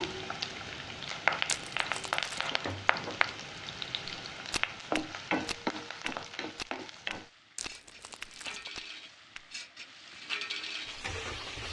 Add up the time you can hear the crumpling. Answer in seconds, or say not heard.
2 s.